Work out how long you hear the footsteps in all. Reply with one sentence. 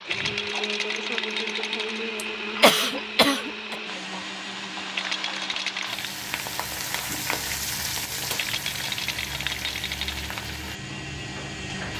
The footsteps can't be heard in this clip.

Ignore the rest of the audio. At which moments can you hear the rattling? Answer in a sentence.
You can hear the rattling from 0.1 to 2.0 s, from 4.9 to 6.2 s and from 8.3 to 10.3 s.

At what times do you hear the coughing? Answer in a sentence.
The coughing can be heard from 2.1 to 3.8 s.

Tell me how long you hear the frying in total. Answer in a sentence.
You can hear the frying for 12 seconds altogether.